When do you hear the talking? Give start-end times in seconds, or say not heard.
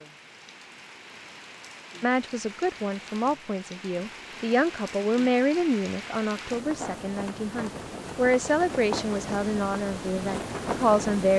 2.0-11.3.